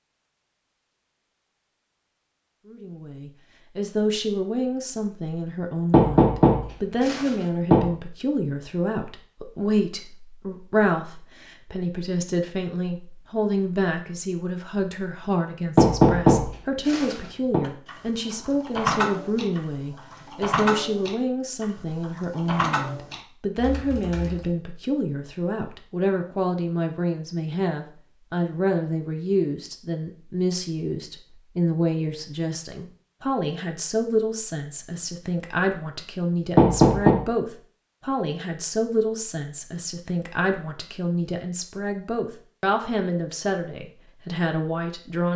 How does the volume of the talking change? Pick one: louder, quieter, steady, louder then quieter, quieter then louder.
steady.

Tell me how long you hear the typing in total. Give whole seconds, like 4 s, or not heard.
7 s.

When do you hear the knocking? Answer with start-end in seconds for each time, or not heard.
5.9-7.9, 15.8-17.6, 36.5-37.2.